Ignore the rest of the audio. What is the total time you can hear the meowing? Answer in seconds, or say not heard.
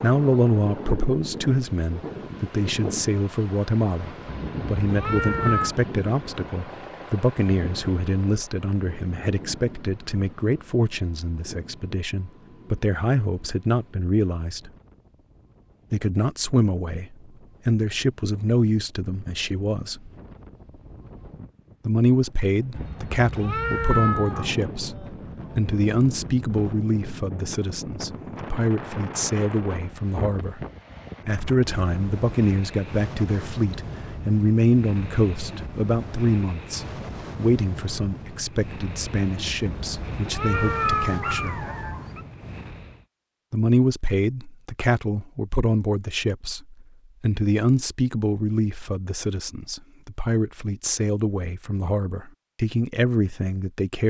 5 s.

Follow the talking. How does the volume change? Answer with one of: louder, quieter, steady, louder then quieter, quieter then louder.
steady.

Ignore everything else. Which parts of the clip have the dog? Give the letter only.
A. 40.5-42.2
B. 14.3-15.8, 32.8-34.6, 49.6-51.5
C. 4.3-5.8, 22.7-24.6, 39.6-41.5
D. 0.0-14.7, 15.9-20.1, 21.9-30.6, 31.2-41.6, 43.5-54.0
A.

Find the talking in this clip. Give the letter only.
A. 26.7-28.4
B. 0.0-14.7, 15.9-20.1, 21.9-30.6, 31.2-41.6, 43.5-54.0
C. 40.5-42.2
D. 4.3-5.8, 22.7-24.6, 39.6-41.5
B.